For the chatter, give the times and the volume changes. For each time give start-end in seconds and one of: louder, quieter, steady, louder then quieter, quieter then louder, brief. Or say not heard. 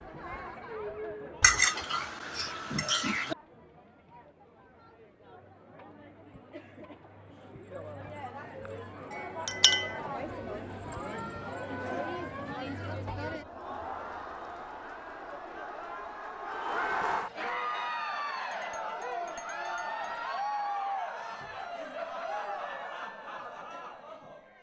0.0-24.5 louder.